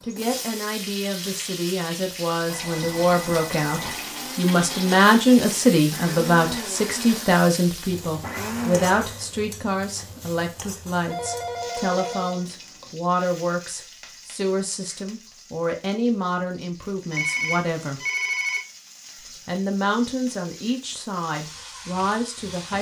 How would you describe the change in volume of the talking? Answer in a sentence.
The volume of the talking goes up, then down.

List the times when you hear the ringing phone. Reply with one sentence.
You can hear the ringing phone from 2.5 to 4.0 s, from 11.1 to 12.9 s and from 17.1 to 18.6 s.